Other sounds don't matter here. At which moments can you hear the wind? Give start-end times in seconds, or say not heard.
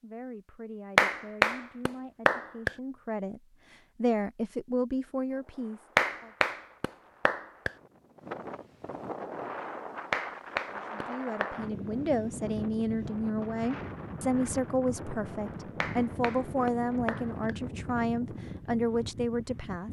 5.2-19.8.